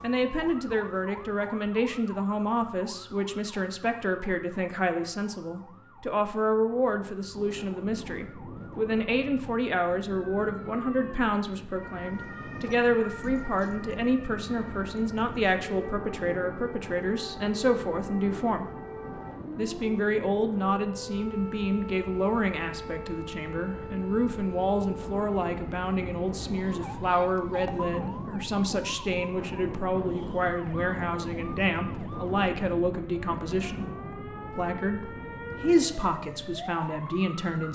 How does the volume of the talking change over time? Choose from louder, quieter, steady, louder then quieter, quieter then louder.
steady.